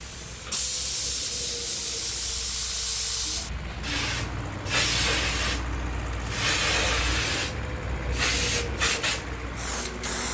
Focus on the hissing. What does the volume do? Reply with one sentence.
The loudness of the hissing stays about the same.